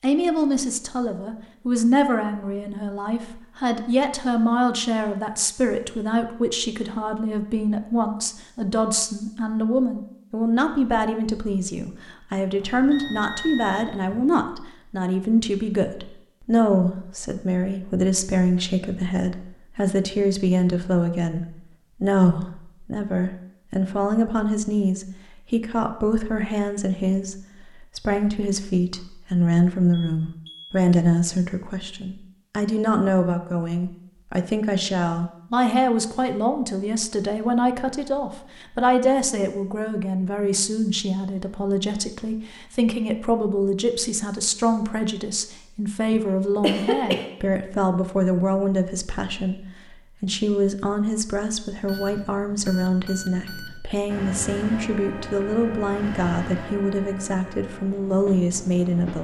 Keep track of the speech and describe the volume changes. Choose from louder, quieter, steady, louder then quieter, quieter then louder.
steady.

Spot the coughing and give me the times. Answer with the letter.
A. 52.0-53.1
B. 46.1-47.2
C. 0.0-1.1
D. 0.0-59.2
B.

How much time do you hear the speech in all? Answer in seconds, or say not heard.
59 s.